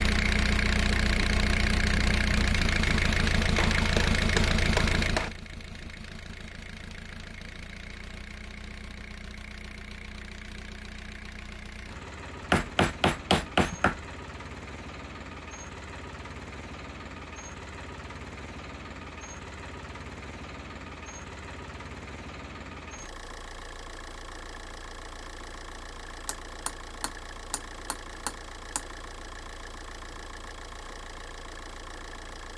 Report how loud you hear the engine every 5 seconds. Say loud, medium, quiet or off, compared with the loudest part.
loud, quiet, quiet, quiet, quiet, quiet, quiet.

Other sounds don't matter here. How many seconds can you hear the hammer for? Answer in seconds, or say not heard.
6 s.